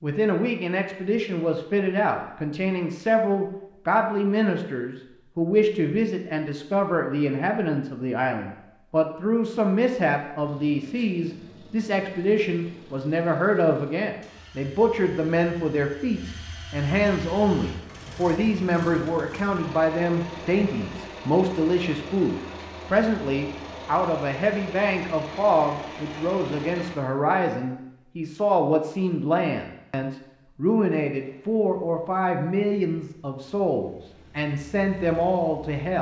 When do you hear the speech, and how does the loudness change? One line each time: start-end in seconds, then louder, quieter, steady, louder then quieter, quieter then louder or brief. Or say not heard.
0.0-35.9 steady.